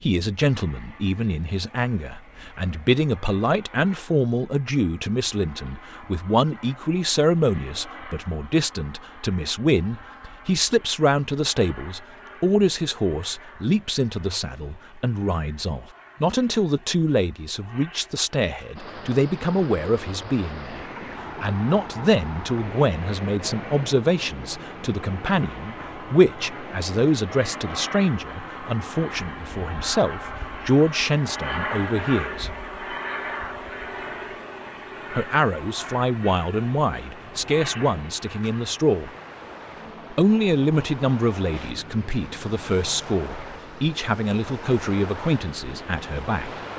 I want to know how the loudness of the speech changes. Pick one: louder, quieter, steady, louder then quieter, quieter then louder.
steady.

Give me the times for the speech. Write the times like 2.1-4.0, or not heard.
0.0-32.5, 35.1-39.1, 40.1-46.5.